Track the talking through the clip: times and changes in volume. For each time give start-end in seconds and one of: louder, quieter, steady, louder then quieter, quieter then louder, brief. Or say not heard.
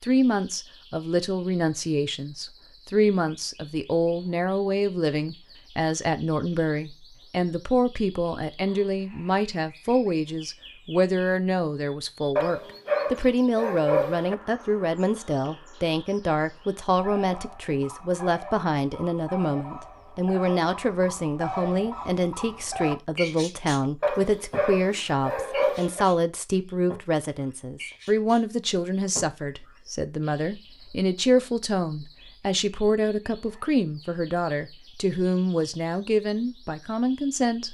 0.0-37.7 steady.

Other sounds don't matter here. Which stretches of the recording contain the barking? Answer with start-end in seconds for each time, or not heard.
12.3-14.3, 24.0-26.1.